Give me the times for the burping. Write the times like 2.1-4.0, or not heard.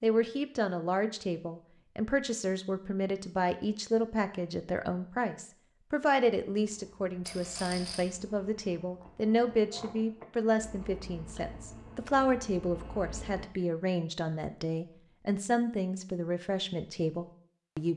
not heard.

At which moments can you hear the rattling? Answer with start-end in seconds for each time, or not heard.
7.2-8.1.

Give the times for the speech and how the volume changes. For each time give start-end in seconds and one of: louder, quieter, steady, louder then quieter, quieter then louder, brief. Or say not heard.
0.0-17.9 steady.